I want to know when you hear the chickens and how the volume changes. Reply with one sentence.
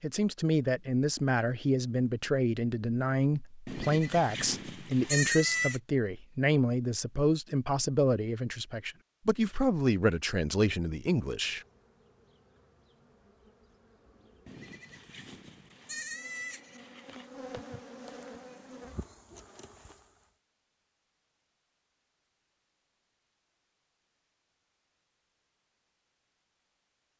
The chickens can't be heard in this clip.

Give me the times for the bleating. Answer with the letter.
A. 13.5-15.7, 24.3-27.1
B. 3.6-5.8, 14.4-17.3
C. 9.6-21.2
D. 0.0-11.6
B.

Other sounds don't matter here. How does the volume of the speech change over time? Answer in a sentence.
The volume of the speech stays about the same.